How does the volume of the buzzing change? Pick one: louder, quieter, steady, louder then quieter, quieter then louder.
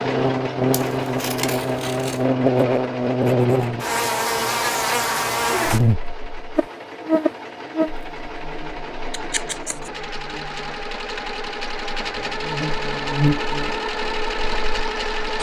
quieter then louder.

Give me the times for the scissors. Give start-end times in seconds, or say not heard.
0.7-2.2, 9.1-9.9.